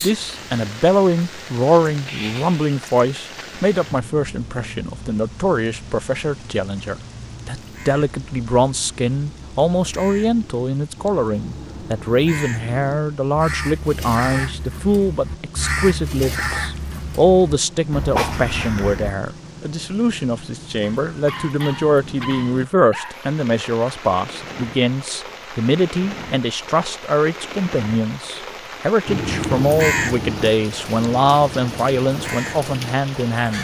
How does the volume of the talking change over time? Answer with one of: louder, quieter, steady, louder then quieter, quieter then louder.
steady.